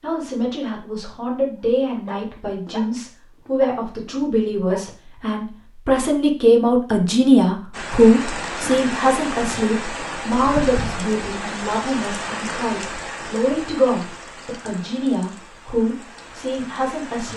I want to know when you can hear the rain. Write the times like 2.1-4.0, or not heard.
7.7-17.3.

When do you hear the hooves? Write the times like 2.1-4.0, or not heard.
not heard.